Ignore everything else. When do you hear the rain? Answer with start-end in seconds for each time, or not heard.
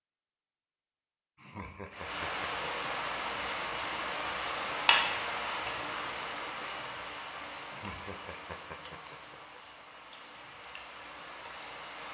1.9-12.0.